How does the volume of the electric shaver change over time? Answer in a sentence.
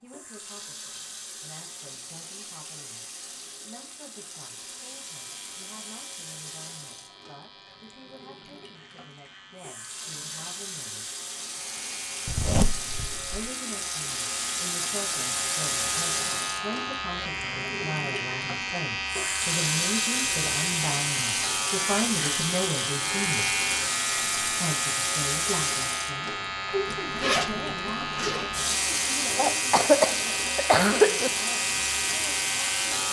The volume of the electric shaver goes up.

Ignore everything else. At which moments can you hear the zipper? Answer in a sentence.
You can hear the zipper from 12.2 to 13.5 s and from 26.9 to 28.6 s.